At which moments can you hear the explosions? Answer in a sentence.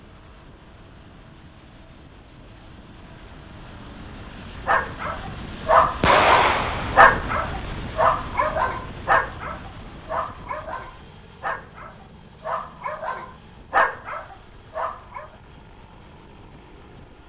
The explosions can be heard from 6.0 to 7.1 s.